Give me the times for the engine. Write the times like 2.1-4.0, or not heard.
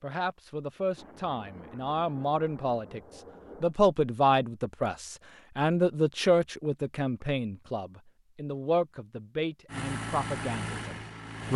9.7-11.5.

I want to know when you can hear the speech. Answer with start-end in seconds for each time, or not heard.
0.0-11.5.